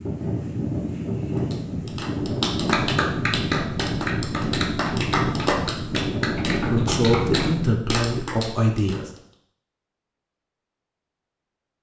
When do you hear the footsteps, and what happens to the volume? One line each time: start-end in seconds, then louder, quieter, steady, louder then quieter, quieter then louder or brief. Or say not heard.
not heard.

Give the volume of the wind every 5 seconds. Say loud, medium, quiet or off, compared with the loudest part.
loud, loud, off.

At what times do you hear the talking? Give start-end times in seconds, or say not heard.
6.5-9.1.